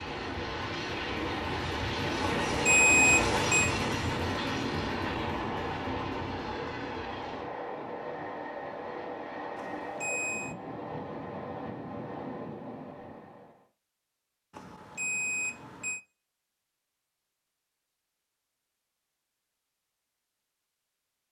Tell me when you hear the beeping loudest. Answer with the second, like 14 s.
3 s.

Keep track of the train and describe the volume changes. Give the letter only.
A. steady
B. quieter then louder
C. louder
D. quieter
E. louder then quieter
D.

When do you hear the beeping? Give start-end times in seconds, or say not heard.
2.2-3.7, 9.6-10.6, 14.5-16.0.